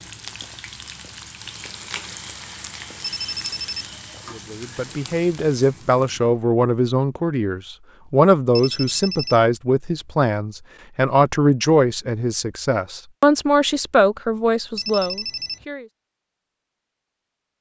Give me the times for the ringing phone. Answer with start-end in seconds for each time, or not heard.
3.0-4.0, 8.5-9.4, 14.8-15.7.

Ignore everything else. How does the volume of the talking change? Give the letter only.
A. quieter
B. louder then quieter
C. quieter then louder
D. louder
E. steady
E.